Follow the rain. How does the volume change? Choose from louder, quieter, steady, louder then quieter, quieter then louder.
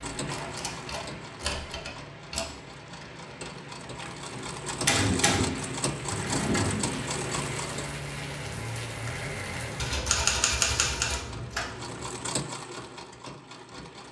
louder.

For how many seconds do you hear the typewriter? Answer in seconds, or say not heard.
7 s.